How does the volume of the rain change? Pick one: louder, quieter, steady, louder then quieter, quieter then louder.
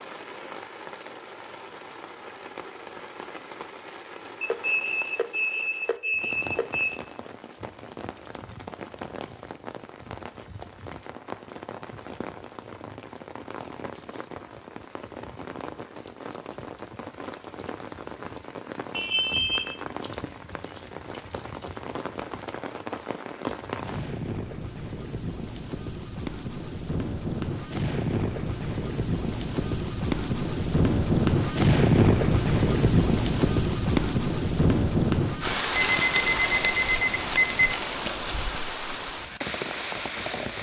louder.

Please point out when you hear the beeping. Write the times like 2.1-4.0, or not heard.
4.4-7.0, 18.9-19.8, 35.7-37.8.